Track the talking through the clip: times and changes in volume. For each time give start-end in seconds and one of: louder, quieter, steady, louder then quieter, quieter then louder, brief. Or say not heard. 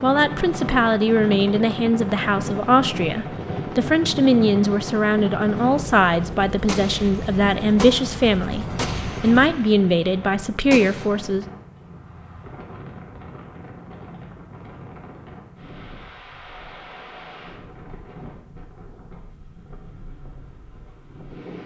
0.0-11.4 steady.